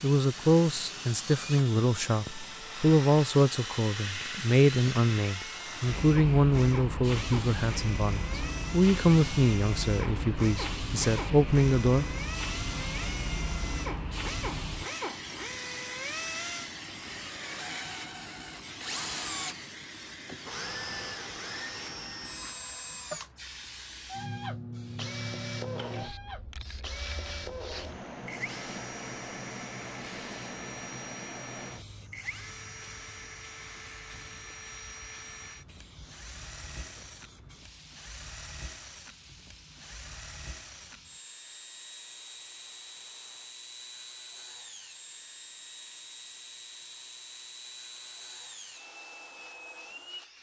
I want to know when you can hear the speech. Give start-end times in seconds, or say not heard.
0.0-12.1.